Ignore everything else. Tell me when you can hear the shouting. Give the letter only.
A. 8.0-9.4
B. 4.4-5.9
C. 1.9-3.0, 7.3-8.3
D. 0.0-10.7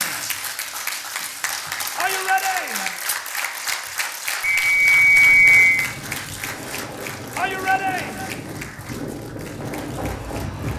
C.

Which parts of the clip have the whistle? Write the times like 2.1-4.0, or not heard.
4.4-5.9.